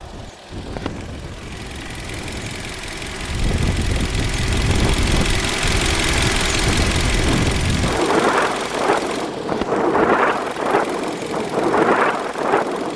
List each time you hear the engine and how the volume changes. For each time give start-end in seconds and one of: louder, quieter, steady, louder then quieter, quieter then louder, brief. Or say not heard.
0.0-12.9 louder then quieter.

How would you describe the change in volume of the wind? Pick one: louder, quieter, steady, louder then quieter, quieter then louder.
louder.